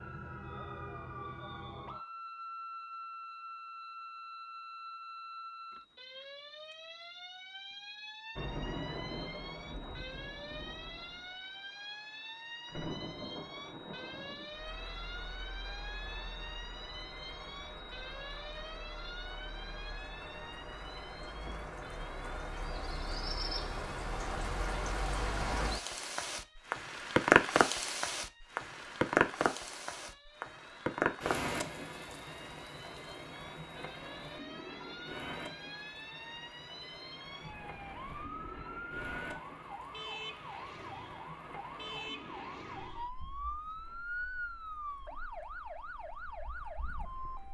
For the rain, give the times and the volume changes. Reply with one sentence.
You can hear the rain from 8.3 to 47.4 s, getting louder then quieter.